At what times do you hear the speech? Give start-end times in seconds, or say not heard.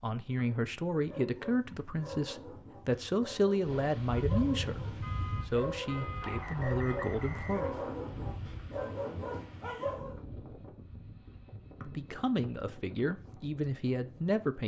0.0-7.7, 11.8-14.6.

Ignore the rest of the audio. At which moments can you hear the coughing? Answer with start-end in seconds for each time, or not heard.
not heard.